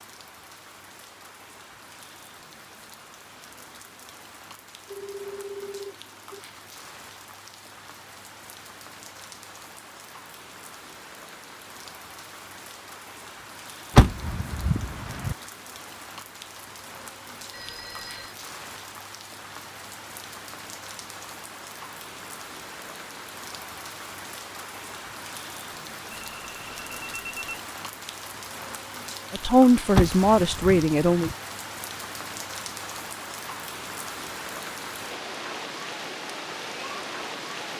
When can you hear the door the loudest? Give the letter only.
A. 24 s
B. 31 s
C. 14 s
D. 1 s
C.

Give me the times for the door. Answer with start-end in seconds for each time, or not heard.
13.9-15.3, 29.9-31.4.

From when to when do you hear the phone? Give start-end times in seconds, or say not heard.
4.8-6.4, 17.5-18.4, 26.1-27.6.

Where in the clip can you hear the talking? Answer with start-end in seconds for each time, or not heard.
29.3-31.3.